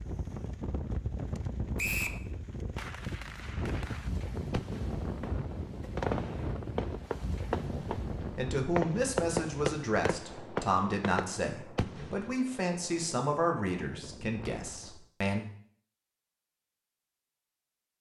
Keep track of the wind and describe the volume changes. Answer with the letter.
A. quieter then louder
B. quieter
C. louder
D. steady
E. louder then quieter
B.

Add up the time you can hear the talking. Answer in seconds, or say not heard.
8 s.